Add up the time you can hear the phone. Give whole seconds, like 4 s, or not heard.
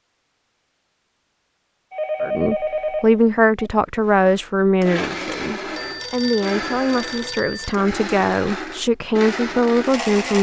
4 s.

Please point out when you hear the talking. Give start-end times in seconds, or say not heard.
2.2-10.3.